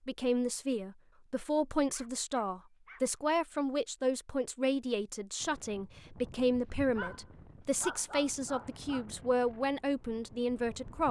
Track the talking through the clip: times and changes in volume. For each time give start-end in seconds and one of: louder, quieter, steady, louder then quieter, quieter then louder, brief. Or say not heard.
0.1-11.0 steady.